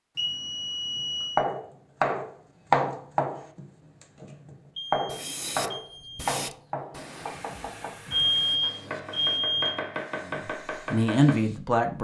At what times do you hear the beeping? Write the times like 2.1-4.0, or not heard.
0.1-1.4, 4.8-6.2, 8.1-9.8.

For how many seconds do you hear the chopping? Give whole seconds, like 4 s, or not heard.
10 s.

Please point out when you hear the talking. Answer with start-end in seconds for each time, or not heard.
10.2-12.0.